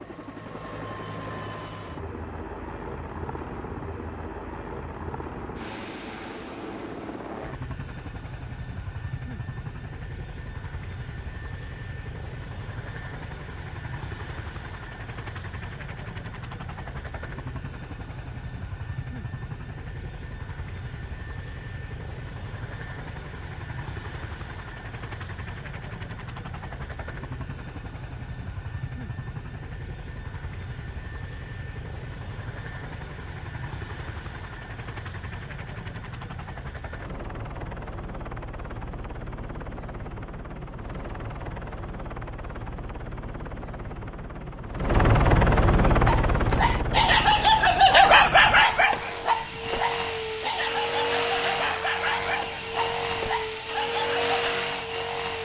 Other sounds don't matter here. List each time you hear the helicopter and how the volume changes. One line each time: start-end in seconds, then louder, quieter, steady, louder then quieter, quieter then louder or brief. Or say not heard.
0.0-55.3 louder.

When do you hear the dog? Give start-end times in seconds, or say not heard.
45.9-54.2.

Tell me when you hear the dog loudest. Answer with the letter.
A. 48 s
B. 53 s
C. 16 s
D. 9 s
A.